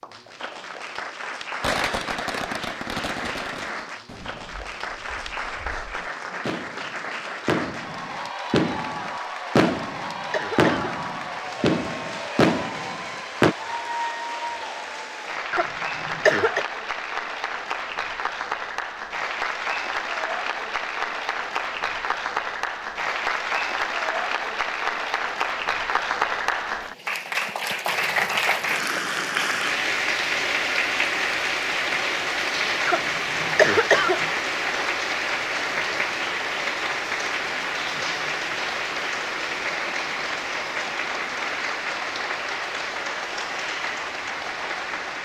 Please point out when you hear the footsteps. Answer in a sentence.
You can't hear the footsteps here.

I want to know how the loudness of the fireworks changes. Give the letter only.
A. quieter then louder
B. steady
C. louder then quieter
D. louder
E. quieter
A.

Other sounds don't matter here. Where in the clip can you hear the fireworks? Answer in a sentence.
The fireworks can be heard from 1.6 to 13.6 s.